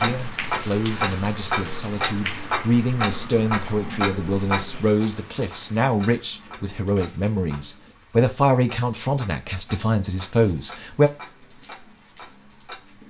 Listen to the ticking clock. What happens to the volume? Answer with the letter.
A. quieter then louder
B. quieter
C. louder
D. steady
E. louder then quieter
B.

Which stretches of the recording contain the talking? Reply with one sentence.
The talking can be heard from 0.0 to 11.1 s.